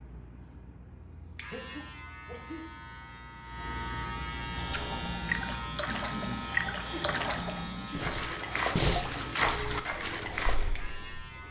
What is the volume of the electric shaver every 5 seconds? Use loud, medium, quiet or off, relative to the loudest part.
loud, loud, medium.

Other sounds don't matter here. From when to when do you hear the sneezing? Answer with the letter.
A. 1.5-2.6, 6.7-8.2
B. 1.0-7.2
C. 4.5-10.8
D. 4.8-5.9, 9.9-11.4
A.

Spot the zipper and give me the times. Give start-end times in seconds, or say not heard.
not heard.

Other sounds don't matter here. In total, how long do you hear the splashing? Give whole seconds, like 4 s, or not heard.
6 s.